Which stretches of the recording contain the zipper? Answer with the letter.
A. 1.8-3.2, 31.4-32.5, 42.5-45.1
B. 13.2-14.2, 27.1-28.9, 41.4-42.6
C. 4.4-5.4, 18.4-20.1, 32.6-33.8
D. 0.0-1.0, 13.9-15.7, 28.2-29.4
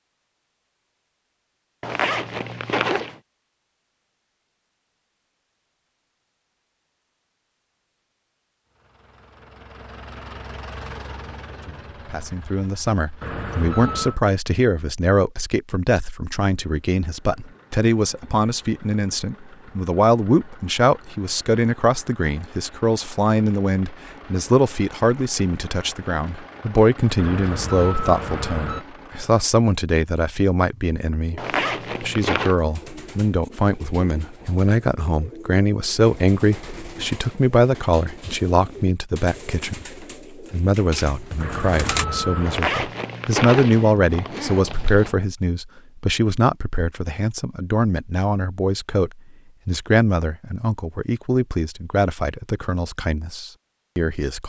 A.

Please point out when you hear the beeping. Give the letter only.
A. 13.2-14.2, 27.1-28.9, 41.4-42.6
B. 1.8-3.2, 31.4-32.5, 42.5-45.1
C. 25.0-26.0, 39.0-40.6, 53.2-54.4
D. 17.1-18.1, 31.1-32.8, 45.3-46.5
A.